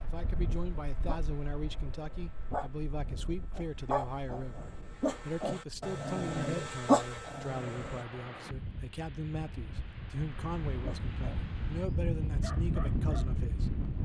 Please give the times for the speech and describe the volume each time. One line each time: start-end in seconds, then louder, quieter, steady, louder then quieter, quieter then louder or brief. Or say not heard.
0.0-14.0 steady.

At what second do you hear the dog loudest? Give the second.
7 s.